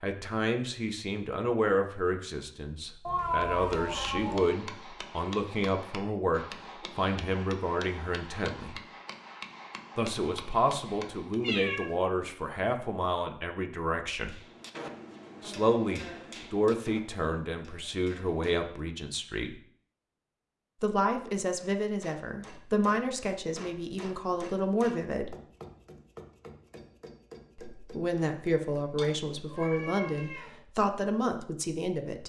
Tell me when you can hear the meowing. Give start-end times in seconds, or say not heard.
3.0-4.6, 11.4-11.9, 28.9-30.6.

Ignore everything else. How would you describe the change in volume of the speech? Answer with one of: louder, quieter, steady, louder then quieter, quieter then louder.
steady.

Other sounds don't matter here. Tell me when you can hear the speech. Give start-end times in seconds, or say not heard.
0.0-8.8, 9.9-14.3, 15.4-19.6, 20.8-25.4, 27.6-32.2.